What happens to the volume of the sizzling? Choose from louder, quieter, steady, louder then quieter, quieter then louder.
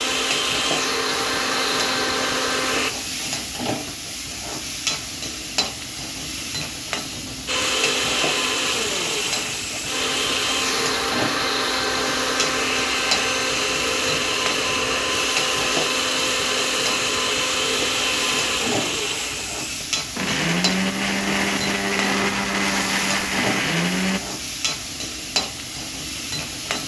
steady.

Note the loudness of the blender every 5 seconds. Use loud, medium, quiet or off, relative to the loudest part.
loud, loud, loud, loud, loud, off.